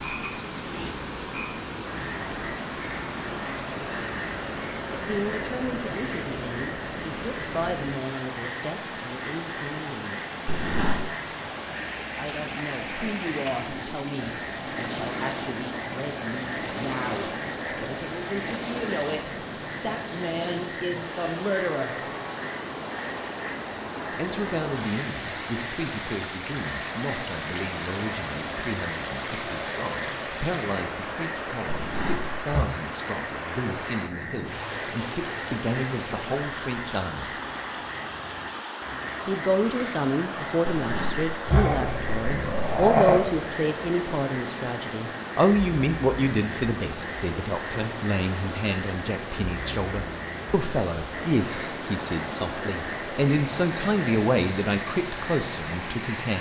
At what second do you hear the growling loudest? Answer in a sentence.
The volume of the growling peaks at 43 seconds.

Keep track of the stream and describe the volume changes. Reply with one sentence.
The volume of the stream stays about the same.